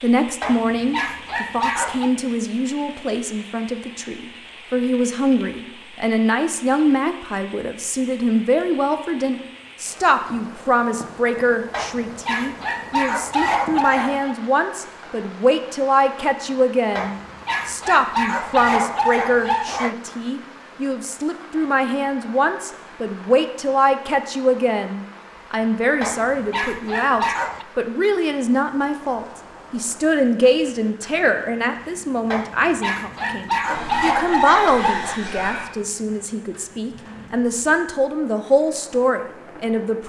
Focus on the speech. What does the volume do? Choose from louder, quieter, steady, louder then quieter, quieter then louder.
steady.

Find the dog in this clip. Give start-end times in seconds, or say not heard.
0.4-2.1, 11.7-14.3, 16.9-19.9, 26.0-27.6, 32.3-35.2.